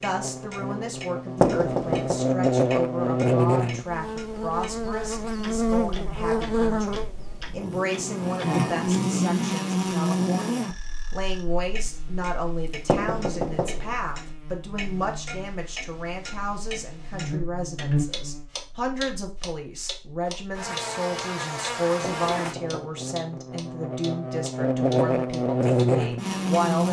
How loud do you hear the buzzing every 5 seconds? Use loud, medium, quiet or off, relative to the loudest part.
loud, loud, medium, medium, medium, loud.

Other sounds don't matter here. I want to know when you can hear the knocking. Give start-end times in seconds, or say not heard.
1.4-2.2, 12.8-13.9, 22.0-23.0.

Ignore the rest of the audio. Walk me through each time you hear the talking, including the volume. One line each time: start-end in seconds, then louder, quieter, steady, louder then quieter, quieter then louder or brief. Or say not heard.
0.0-26.8 steady.